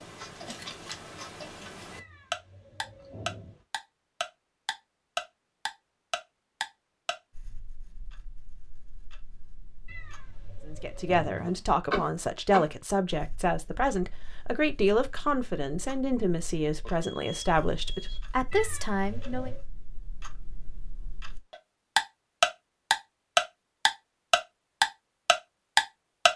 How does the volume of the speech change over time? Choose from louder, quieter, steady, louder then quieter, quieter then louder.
steady.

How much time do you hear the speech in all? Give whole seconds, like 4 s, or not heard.
9 s.